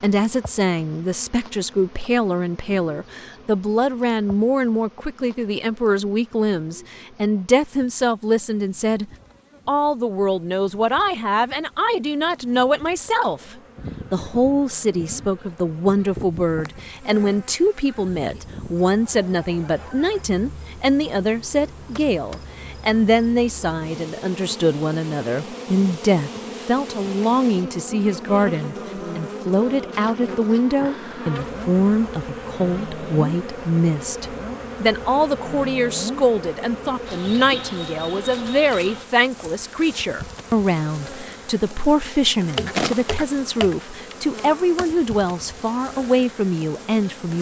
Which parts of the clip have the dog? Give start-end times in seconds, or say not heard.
not heard.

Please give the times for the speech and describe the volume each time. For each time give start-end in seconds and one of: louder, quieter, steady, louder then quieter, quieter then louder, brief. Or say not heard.
0.0-47.3 steady.